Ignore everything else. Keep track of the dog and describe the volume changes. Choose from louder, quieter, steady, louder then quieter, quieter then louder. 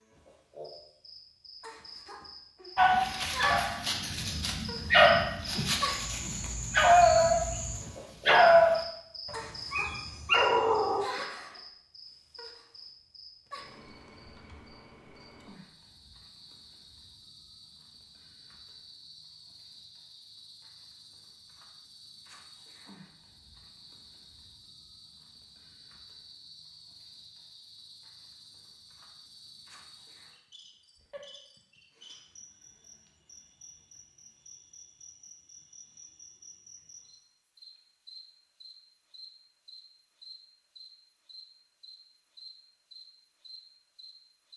louder then quieter.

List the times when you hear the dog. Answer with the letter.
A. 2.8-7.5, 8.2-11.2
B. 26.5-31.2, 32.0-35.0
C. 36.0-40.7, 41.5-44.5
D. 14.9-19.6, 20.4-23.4
A.